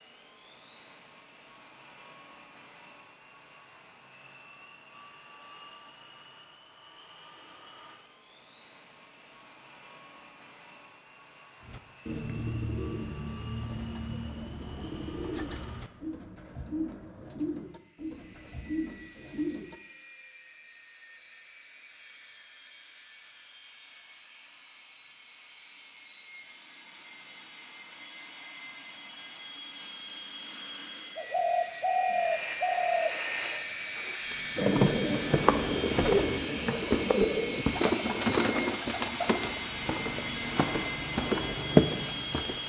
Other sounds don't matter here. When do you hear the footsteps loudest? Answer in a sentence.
The loudest moment of the footsteps is at 42 seconds.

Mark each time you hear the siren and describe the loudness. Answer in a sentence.
You can't hear the siren here.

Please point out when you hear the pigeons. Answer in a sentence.
You can hear the pigeons from 11.7 to 19.8 s and from 31.1 to 39.5 s.